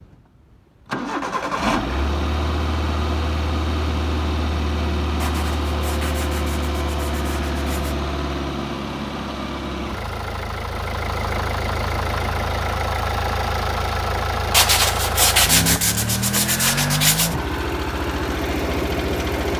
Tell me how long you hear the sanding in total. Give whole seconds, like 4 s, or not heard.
6 s.